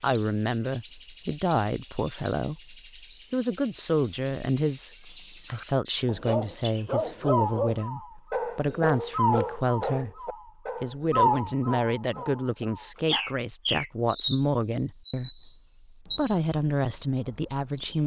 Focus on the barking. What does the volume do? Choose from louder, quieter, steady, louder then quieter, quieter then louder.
quieter.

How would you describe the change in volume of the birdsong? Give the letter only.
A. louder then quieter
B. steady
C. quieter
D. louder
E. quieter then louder
A.